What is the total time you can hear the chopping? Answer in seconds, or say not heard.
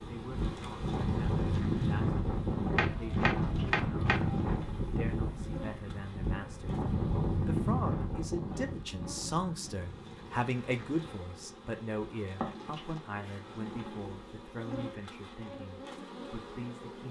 2 s.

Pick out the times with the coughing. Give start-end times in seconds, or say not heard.
not heard.